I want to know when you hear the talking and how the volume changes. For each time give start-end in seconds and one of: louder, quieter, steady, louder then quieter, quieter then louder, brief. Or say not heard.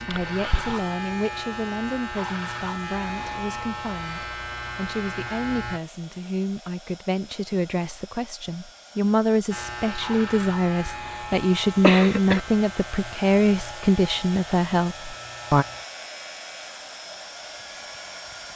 0.1-15.7 louder.